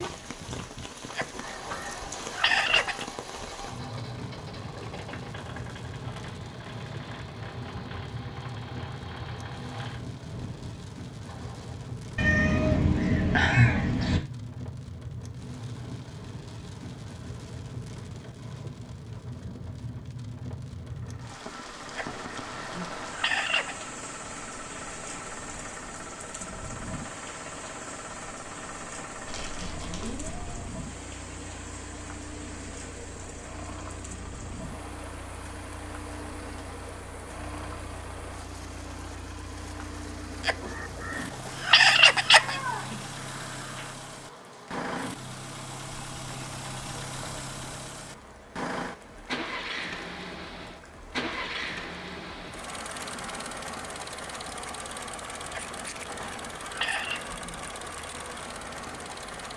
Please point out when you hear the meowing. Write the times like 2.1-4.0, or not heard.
12.2-14.2, 29.2-30.6, 42.4-43.9.